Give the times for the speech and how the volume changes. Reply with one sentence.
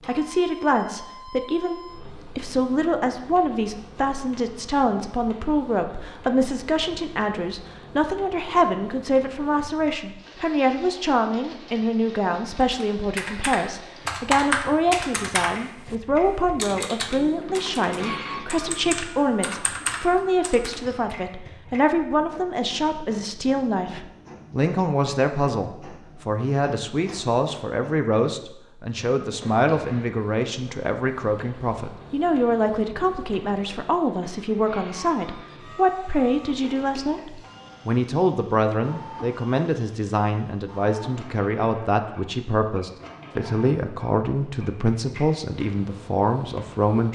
The speech can be heard from 0.1 to 47.1 s, at a steady volume.